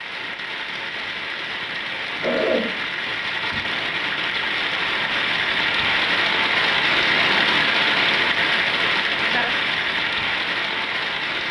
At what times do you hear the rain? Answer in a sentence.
You can hear the rain from 0.0 to 11.4 s.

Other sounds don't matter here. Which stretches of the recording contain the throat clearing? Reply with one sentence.
You can hear the throat clearing from 2.1 to 3.8 s.